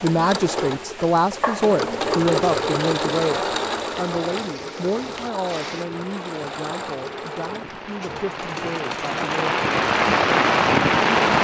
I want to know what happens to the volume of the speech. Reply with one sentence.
The loudness of the speech goes down.